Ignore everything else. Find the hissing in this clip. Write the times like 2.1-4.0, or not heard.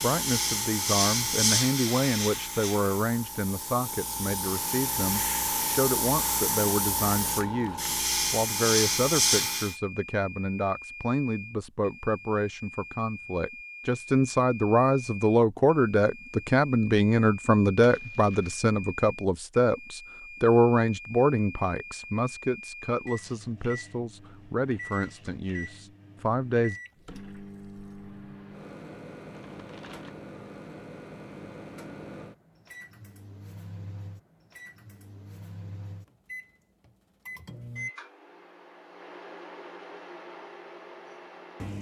0.0-9.8.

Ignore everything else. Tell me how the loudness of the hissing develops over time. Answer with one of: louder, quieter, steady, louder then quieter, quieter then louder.
quieter then louder.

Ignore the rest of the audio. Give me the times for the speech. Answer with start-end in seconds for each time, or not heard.
0.0-26.8.